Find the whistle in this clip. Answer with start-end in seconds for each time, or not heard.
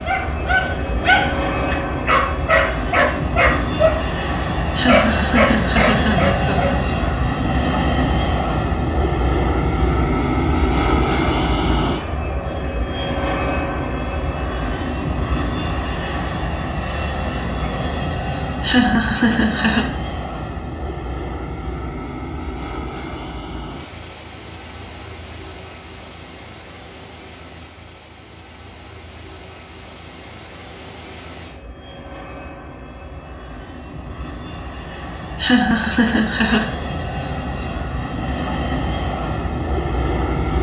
not heard.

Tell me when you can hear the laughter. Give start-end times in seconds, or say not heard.
4.8-6.8, 18.6-19.9, 35.4-36.7.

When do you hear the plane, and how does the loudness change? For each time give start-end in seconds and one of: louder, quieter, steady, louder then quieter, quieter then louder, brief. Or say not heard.
0.0-40.5 quieter then louder.